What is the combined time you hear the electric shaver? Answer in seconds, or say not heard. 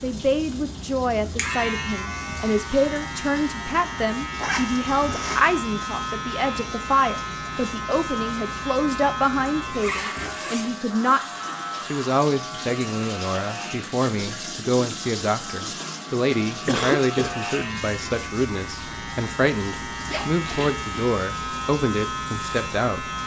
23 s.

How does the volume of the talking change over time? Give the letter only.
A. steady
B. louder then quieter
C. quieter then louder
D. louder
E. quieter
A.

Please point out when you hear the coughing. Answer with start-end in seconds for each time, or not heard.
16.6-17.4.